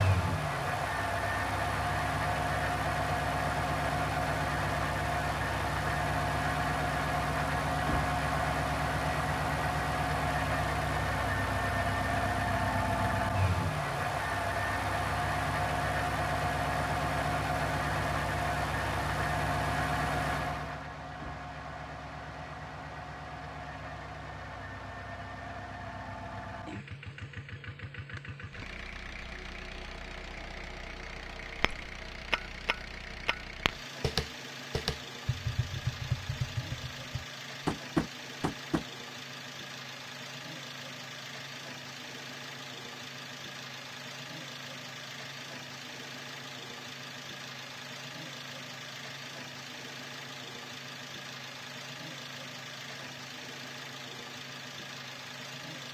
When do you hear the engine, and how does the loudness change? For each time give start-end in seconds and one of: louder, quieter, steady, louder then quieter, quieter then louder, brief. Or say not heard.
0.0-55.8 quieter.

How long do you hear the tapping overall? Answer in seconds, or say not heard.
7 s.